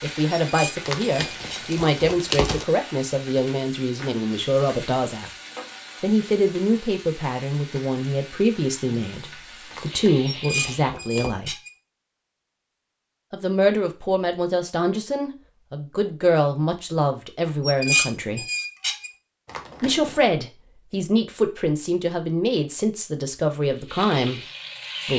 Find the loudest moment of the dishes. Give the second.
18 s.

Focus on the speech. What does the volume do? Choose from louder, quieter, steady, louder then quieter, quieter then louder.
steady.